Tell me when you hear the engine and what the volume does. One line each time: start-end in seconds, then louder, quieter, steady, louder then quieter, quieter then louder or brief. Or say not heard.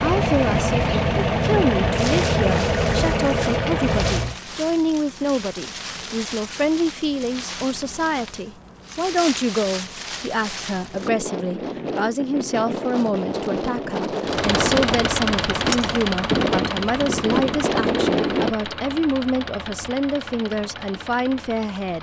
0.0-4.3 steady
14.2-21.9 quieter.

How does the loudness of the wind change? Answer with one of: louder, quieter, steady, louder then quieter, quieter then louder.
louder.